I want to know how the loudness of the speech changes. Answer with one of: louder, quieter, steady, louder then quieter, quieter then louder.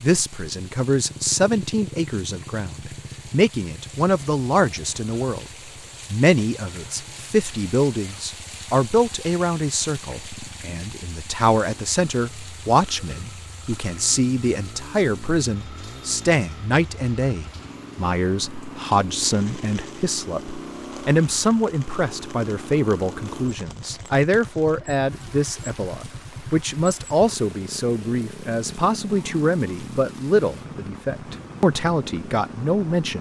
steady.